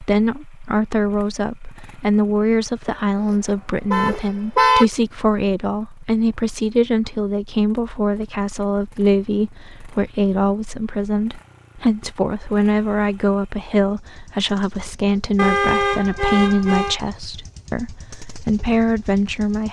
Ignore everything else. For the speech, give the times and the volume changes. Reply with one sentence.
The speech can be heard from 0.0 to 19.6 s, at a steady volume.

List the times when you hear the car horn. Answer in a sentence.
You can hear the car horn from 3.9 to 4.8 s and from 15.3 to 17.0 s.